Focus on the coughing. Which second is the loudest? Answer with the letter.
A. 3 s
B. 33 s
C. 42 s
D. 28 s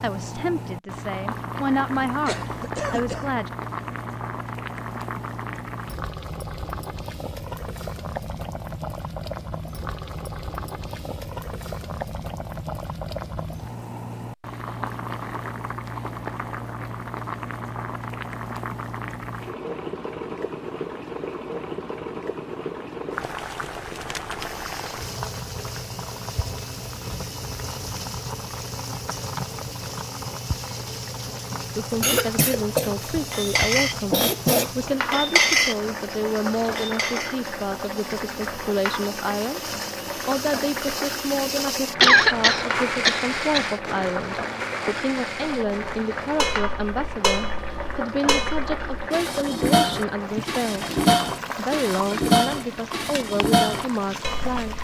C.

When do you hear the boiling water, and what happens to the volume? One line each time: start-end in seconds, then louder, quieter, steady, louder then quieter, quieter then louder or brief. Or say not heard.
0.0-54.7 steady.